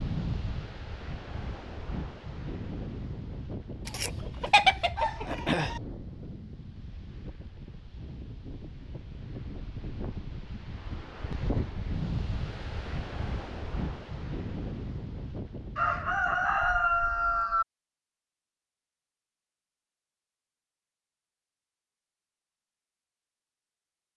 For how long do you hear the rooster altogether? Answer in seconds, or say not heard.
4 s.